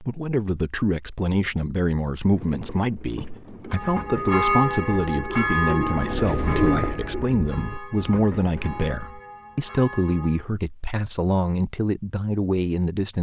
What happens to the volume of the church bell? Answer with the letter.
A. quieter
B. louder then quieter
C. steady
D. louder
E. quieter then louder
A.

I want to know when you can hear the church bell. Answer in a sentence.
You can hear the church bell from 3.7 to 10.5 s.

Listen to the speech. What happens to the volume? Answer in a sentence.
The loudness of the speech stays about the same.